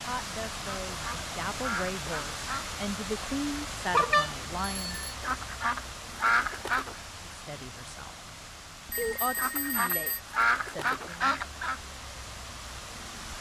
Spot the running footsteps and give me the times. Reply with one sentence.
You can't hear the running footsteps here.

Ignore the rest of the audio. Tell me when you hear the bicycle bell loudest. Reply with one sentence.
The volume of the bicycle bell peaks at 4 seconds.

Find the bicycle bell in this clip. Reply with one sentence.
The bicycle bell can be heard from 3.9 to 5.2 s and from 8.8 to 10.2 s.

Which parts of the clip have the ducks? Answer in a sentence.
You can hear the ducks from 0.9 to 2.7 s, from 5.2 to 7.0 s and from 9.3 to 11.8 s.